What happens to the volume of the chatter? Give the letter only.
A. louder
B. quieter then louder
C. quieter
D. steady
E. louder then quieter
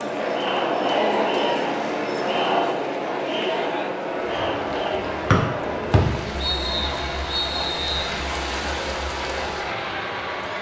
C.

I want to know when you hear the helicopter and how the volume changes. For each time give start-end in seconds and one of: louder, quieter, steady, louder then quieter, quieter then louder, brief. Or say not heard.
0.0-10.5 steady.